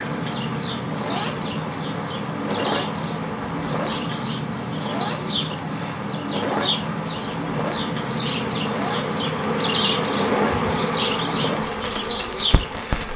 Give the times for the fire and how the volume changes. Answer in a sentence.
You can hear the fire from 0.0 to 13.1 s, at a steady volume.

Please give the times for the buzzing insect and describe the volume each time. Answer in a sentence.
You can hear the buzzing insect from 0.0 to 13.1 s, getting louder.